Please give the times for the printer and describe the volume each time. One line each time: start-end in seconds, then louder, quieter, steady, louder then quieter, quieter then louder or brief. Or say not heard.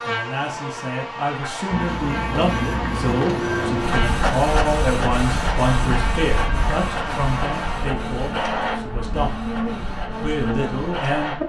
1.7-11.4 quieter.